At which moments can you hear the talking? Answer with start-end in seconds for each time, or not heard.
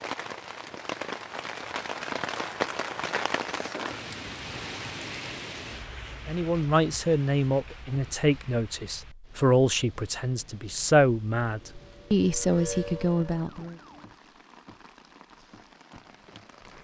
6.2-13.8.